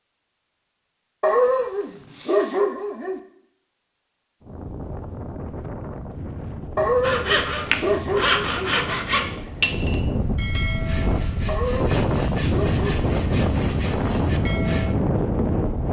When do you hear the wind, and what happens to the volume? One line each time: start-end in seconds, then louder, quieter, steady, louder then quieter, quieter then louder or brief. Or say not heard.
4.4-15.8 louder.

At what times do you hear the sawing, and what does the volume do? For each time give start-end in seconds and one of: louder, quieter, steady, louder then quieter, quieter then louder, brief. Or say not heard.
7.0-14.9 quieter.